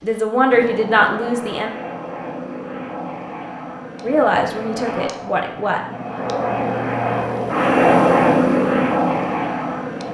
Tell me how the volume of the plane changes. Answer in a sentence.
The volume of the plane goes up.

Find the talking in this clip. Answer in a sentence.
The talking can be heard from 0.0 to 1.7 s and from 4.0 to 5.8 s.